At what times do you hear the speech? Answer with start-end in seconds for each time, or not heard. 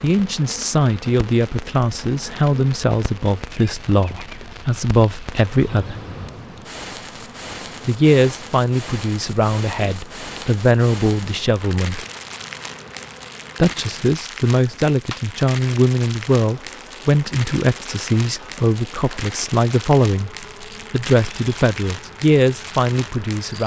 0.0-6.0, 7.8-12.1, 13.6-20.3, 20.9-23.6.